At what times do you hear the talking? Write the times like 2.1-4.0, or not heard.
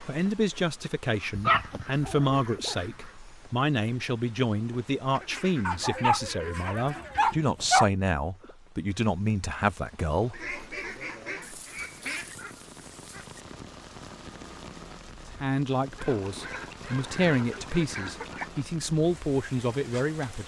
0.1-10.5, 15.4-20.4.